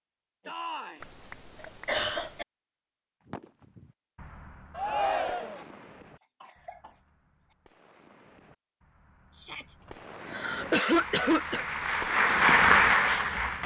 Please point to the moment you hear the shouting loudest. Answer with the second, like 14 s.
5 s.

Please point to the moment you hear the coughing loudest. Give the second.
11 s.